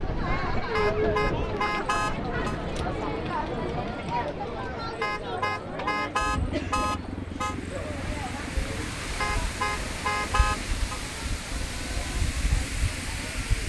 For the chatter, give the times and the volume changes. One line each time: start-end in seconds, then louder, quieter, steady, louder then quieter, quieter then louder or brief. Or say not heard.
0.0-13.6 quieter.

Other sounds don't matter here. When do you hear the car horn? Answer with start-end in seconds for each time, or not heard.
0.8-2.6, 5.0-7.5, 9.2-11.0.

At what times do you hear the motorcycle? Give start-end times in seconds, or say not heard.
6.2-13.6.